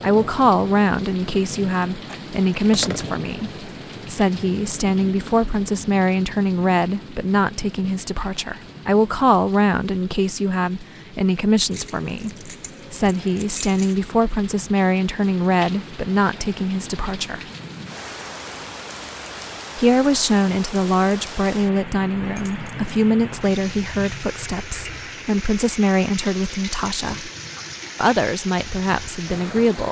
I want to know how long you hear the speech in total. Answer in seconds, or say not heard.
27 s.